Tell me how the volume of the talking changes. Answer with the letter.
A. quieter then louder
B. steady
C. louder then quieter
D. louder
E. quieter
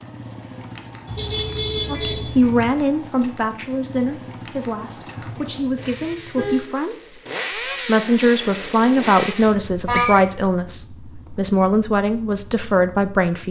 A.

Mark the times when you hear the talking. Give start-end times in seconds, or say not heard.
1.9-13.4.